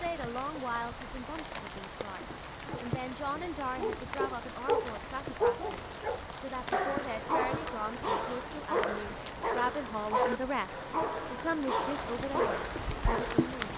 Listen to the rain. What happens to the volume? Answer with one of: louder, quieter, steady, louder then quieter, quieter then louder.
steady.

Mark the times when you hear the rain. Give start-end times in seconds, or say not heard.
0.0-13.7.